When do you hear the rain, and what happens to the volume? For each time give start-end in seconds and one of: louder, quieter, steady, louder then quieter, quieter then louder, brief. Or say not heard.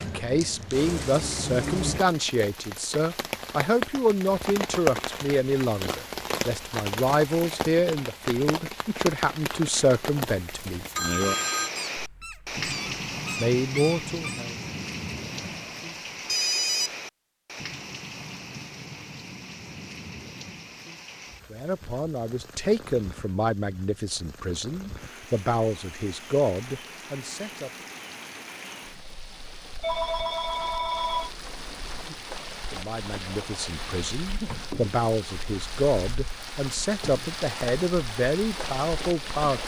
0.0-39.6 quieter then louder.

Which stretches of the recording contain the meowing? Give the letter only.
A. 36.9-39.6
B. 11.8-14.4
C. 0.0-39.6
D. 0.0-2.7
B.